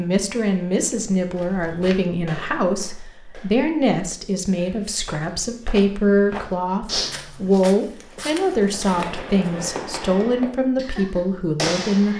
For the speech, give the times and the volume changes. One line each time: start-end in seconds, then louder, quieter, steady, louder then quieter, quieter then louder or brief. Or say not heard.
0.0-12.1 steady.